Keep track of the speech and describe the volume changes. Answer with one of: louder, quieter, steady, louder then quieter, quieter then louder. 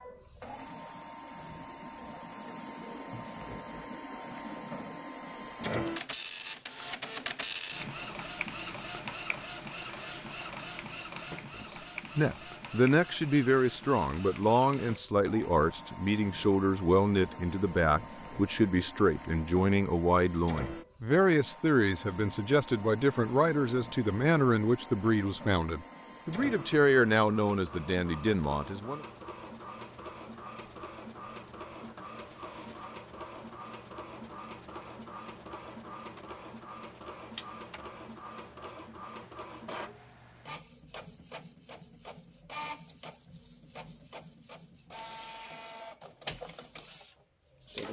steady.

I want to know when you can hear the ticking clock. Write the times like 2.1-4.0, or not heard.
not heard.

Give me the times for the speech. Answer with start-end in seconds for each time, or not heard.
11.6-29.1.